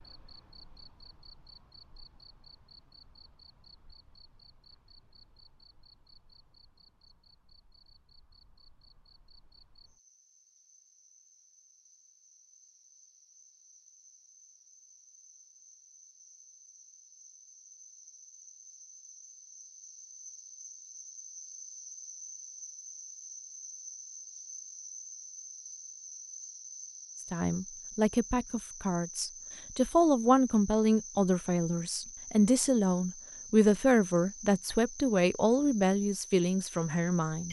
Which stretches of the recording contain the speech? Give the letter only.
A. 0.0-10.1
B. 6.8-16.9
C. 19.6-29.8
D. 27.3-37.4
D.